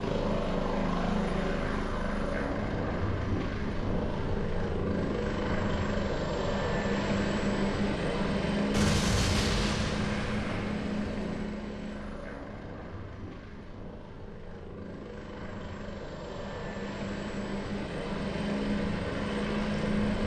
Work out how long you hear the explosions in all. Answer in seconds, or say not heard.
3 s.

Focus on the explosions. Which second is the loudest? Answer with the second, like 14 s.
9 s.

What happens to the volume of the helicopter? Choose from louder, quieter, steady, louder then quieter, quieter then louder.
quieter then louder.